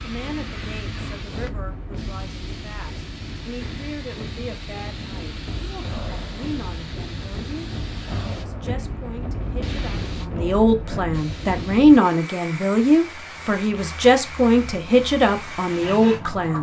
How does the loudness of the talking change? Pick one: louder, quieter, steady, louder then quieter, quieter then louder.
louder.